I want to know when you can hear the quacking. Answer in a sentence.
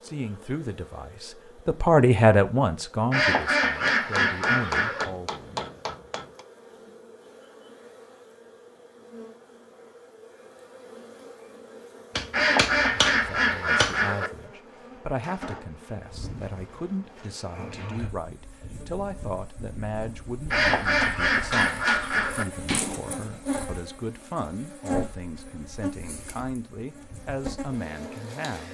The quacking can be heard from 3.1 to 5.0 s, from 12.3 to 14.3 s and from 20.5 to 22.4 s.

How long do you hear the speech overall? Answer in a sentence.
The speech can be heard for 21 seconds in total.